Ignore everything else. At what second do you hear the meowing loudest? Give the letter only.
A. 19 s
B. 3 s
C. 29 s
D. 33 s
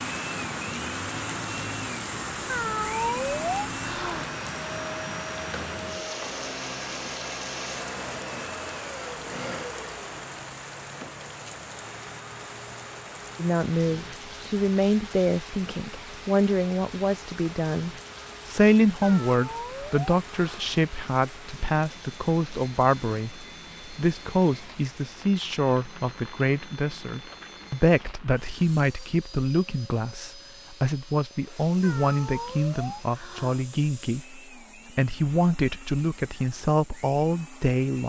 B.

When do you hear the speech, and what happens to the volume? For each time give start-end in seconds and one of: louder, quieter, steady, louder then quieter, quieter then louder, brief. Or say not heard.
13.3-38.0 steady.